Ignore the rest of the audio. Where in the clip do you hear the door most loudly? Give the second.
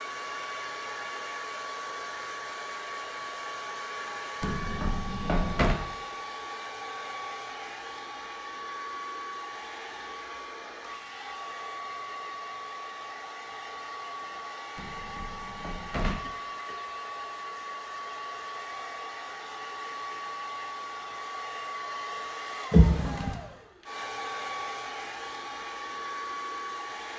23 s.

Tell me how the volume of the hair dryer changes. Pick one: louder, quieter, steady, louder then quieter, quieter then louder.
steady.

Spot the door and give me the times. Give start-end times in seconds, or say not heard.
4.4-5.8, 14.8-16.2, 22.7-23.4.